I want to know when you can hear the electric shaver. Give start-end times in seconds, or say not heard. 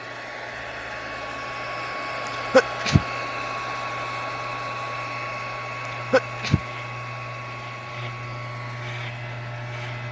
0.0-10.0.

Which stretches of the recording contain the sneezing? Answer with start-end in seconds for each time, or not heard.
2.5-3.0, 5.8-6.6.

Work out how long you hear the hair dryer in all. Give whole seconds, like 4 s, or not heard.
10 s.